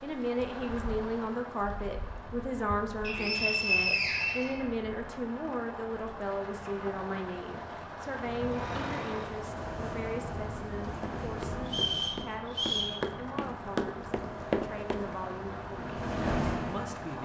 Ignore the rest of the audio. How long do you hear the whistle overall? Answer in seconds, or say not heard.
3 s.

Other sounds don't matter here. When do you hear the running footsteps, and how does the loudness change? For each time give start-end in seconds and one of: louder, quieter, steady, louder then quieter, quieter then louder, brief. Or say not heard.
11.0-15.1 louder.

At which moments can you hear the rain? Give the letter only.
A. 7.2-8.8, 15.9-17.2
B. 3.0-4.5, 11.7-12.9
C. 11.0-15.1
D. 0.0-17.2
D.